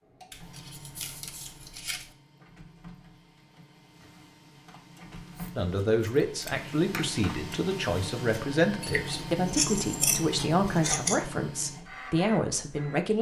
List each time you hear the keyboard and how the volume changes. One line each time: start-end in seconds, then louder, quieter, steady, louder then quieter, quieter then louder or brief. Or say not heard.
not heard.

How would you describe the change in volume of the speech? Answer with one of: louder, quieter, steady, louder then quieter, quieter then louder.
steady.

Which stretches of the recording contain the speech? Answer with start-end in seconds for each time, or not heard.
5.5-13.1.